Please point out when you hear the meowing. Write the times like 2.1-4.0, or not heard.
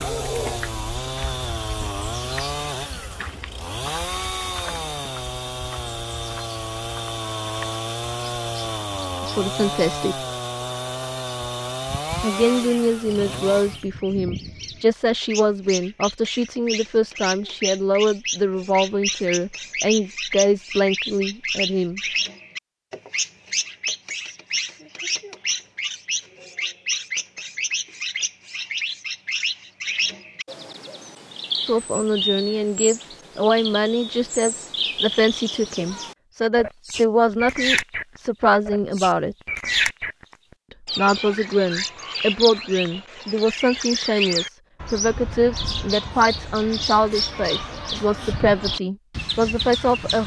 not heard.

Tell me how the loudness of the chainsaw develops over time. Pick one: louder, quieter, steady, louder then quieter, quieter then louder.
steady.